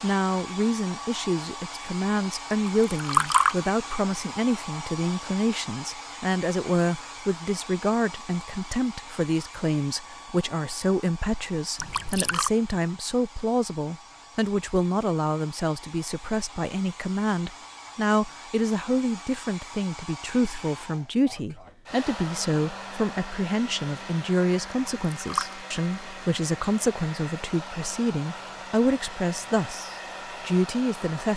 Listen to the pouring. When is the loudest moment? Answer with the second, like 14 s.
3 s.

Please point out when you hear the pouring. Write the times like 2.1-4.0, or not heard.
2.9-3.6, 11.8-12.5, 25.1-25.6.